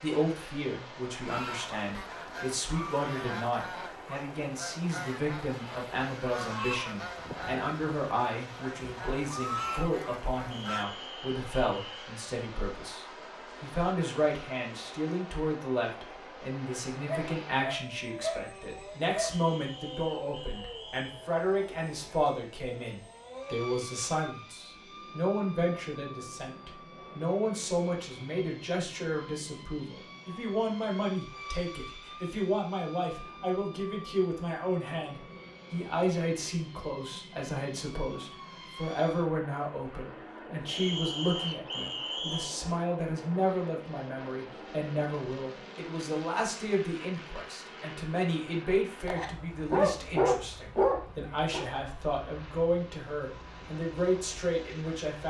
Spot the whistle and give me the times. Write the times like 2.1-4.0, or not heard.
10.5-11.9, 19.3-21.3, 40.6-42.5.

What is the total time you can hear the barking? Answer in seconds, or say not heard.
5 s.